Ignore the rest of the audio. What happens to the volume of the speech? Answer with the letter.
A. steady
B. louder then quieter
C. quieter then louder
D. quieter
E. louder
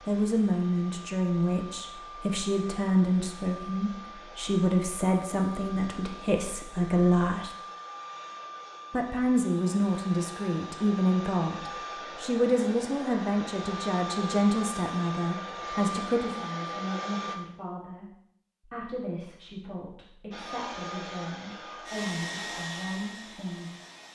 D.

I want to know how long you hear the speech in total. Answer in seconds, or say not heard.
22 s.